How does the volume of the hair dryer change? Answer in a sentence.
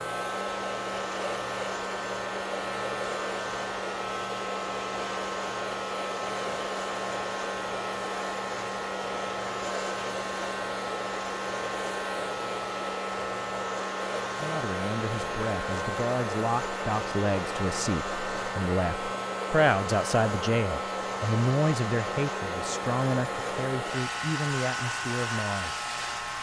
The loudness of the hair dryer stays about the same.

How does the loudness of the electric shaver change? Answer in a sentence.
The loudness of the electric shaver stays about the same.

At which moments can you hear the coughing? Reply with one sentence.
The coughing can't be heard in this clip.